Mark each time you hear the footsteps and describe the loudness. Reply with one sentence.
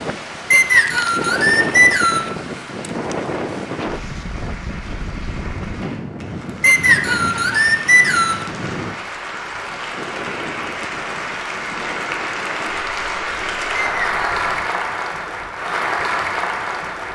You can't hear the footsteps here.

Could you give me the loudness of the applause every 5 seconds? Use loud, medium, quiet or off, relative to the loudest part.
quiet, medium, loud, loud.